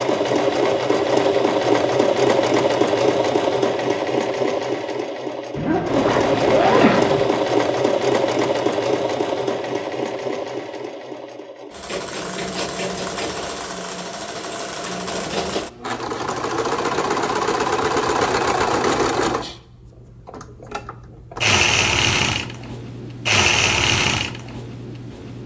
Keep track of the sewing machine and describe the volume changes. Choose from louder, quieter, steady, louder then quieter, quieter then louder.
quieter then louder.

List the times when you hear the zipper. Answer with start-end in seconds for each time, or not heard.
5.5-7.2.